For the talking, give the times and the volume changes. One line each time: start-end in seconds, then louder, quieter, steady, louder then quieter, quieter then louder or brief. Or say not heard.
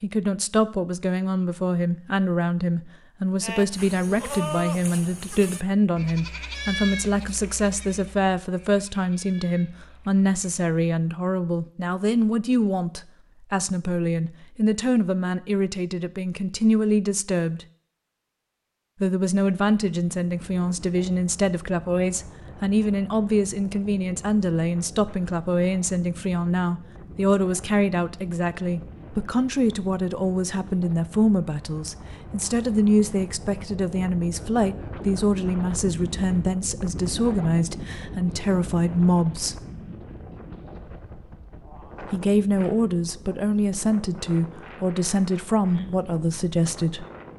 0.0-17.6 steady
19.0-39.5 steady
42.0-47.0 steady.